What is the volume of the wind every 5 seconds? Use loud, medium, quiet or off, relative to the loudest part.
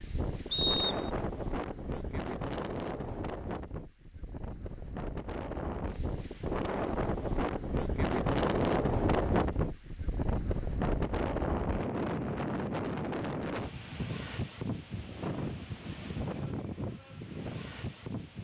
medium, loud, loud, medium.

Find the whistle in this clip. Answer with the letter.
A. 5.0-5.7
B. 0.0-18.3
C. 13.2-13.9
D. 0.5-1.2
D.